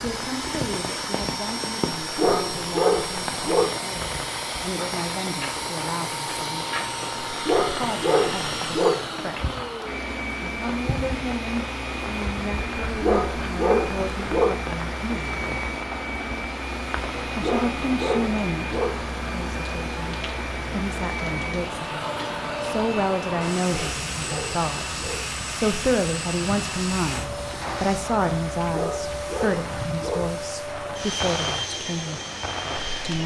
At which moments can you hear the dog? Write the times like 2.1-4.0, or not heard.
2.0-3.7, 7.3-8.9, 12.8-14.6, 17.2-18.9, 23.6-25.2, 28.6-30.2.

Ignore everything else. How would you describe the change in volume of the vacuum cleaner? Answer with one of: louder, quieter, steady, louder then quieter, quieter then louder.
steady.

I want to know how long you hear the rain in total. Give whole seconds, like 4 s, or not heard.
33 s.